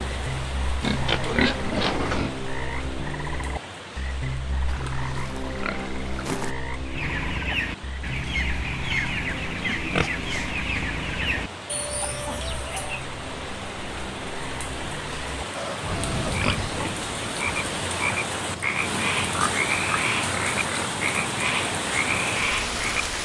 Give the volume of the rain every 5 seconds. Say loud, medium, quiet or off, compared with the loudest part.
medium, quiet, medium, loud, loud.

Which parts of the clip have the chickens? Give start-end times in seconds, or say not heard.
6.8-13.1.